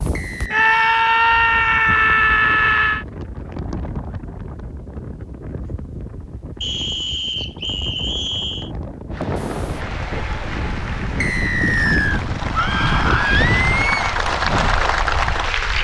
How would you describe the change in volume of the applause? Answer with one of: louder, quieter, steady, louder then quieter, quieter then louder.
louder.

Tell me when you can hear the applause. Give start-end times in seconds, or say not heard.
9.1-15.7.